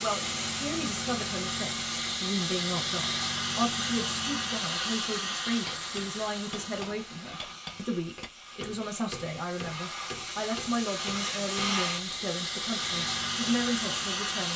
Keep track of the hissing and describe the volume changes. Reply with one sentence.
The loudness of the hissing goes down, then up.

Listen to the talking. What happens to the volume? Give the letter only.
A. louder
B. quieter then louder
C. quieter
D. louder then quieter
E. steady
E.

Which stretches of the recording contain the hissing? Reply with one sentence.
You can hear the hissing from 0.0 to 14.5 s.